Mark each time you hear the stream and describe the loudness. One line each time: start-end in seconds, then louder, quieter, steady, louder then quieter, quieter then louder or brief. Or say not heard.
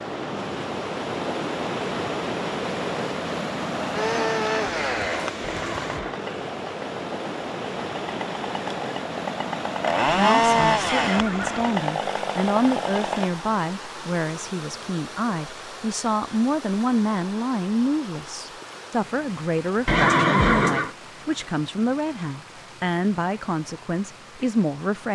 0.0-25.0 quieter.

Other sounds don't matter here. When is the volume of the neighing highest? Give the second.
20 s.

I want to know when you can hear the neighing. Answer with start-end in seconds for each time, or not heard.
5.4-6.2, 10.1-11.6, 19.9-20.9.